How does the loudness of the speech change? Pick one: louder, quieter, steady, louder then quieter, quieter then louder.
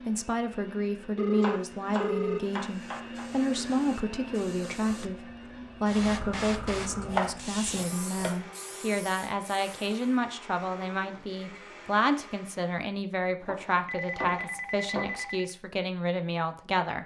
steady.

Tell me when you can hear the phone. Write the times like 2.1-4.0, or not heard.
1.1-2.4, 13.8-15.6.